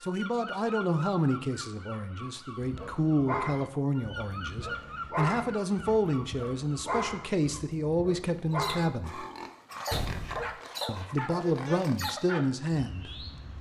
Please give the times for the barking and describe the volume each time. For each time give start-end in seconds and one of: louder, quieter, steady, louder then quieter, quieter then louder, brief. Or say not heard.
2.6-12.7 steady.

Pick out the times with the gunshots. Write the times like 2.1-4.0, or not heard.
9.9-10.6.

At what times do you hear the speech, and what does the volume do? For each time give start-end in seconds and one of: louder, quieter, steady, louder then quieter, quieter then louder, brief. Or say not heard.
0.0-9.2 steady
10.8-13.2 brief.